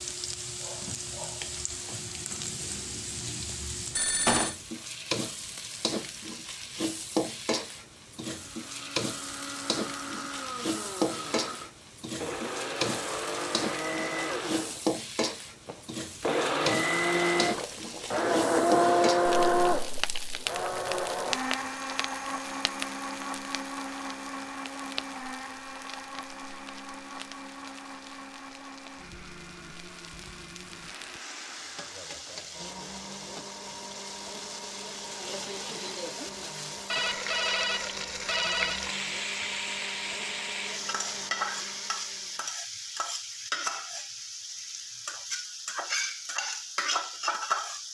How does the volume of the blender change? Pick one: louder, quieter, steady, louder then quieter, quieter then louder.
louder then quieter.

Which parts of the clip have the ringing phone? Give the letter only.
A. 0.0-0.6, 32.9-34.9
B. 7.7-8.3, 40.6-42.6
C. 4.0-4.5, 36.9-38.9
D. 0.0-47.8
C.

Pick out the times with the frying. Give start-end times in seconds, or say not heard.
0.0-47.8.